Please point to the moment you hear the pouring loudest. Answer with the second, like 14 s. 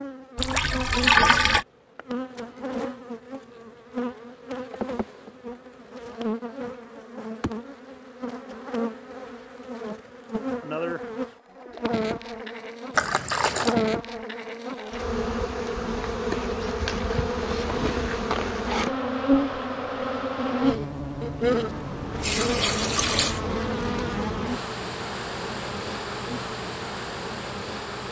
1 s.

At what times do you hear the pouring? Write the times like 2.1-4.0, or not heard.
0.3-1.6, 12.9-13.8, 22.1-23.4.